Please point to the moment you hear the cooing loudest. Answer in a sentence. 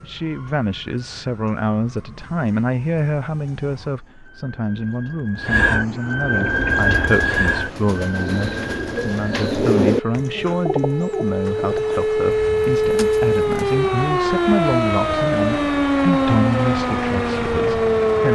The volume of the cooing peaks at 10 seconds.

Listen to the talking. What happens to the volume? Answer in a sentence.
The loudness of the talking stays about the same.